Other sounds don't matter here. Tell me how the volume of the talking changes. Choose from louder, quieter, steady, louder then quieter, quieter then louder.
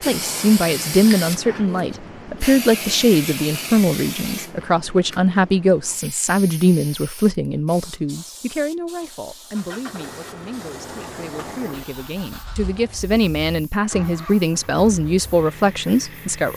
quieter then louder.